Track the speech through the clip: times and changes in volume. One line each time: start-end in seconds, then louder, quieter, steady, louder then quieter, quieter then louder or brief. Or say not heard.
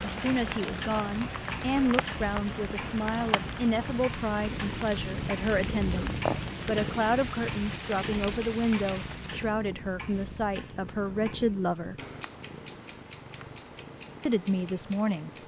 0.0-11.9 steady
14.2-15.3 brief.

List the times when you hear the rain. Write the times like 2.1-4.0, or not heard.
0.0-9.6.